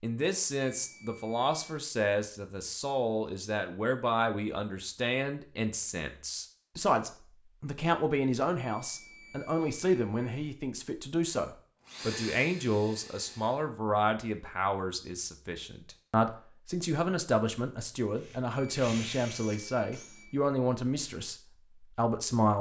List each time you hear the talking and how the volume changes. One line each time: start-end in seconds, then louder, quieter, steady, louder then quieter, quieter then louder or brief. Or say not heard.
0.0-22.5 steady.